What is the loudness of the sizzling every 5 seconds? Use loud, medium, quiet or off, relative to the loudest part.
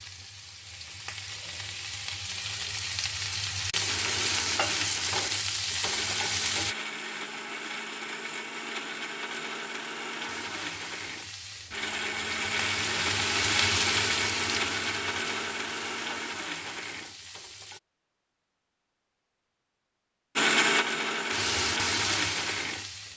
loud, loud, loud, quiet, loud.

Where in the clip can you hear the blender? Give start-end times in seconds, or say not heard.
3.9-17.1, 20.4-22.9.